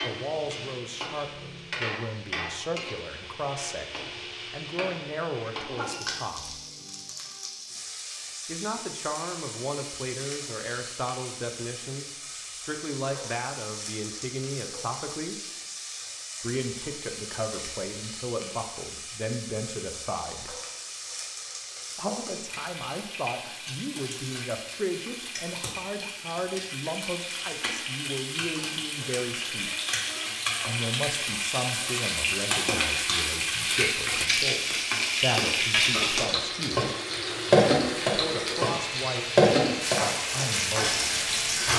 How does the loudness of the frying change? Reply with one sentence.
The loudness of the frying goes up.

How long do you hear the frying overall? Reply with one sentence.
The frying can be heard for 42 seconds in total.